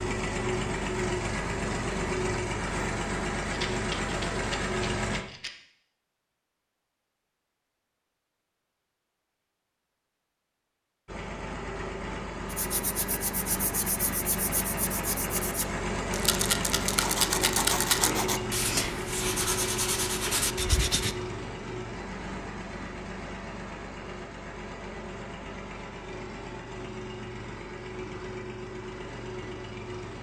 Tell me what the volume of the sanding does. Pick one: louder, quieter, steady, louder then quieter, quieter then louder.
louder.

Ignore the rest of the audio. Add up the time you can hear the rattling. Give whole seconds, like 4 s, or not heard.
4 s.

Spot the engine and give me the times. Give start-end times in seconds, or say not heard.
0.0-5.2, 11.1-30.1.